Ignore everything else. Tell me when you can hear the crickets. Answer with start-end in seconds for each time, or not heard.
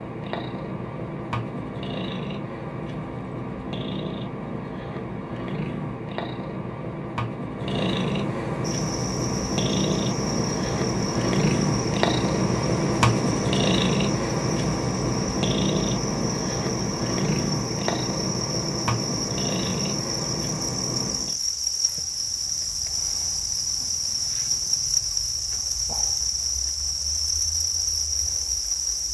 8.6-29.0.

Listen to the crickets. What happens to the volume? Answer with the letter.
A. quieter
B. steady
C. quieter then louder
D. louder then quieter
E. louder
E.